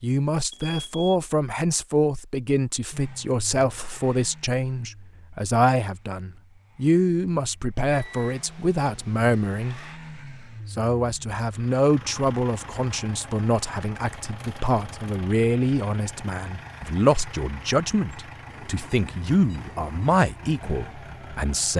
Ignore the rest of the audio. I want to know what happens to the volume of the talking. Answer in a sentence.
The loudness of the talking stays about the same.